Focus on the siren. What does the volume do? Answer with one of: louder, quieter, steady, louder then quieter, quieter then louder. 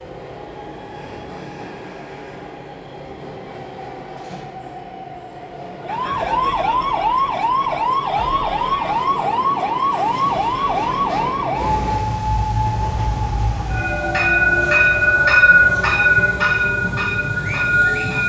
quieter.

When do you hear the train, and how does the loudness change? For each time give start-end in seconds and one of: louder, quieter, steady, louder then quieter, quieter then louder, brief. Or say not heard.
0.0-18.2 louder.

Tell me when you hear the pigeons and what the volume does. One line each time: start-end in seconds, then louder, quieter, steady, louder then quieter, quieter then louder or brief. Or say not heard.
not heard.